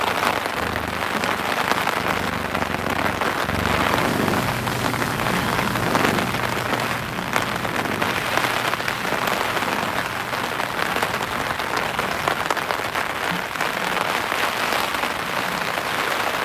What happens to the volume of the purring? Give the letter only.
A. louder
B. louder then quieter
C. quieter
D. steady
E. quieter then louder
B.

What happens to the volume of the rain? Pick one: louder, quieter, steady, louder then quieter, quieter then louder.
steady.